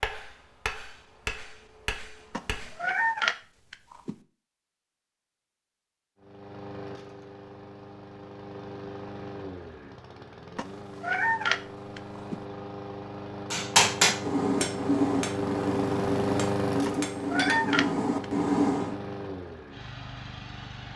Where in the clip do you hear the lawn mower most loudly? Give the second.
16 s.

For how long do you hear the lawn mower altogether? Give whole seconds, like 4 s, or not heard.
15 s.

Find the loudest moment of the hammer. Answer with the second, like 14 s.
14 s.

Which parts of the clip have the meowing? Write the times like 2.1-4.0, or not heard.
2.3-4.2, 10.6-12.4, 16.9-18.2.